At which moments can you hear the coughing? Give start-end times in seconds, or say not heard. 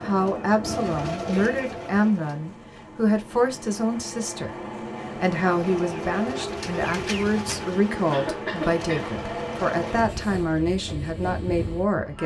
7.9-9.2.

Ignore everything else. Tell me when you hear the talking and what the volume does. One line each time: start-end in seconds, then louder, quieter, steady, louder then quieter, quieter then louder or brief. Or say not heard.
0.0-12.2 steady.